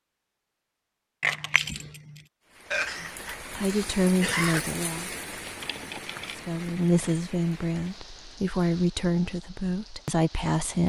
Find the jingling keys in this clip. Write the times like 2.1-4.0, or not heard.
1.2-2.3, 5.6-7.2.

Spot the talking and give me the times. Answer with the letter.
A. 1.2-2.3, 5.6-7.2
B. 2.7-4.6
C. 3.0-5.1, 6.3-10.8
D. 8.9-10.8
C.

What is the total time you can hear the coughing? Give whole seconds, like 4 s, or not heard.
2 s.